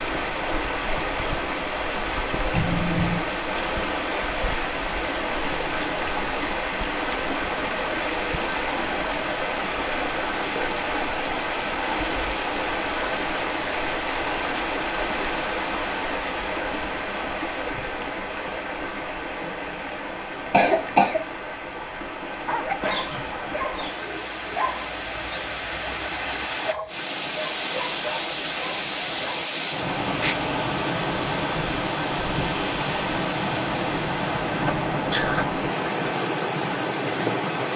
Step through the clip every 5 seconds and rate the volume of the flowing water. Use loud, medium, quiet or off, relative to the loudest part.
loud, loud, loud, loud, medium, loud, loud, loud.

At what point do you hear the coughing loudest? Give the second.
21 s.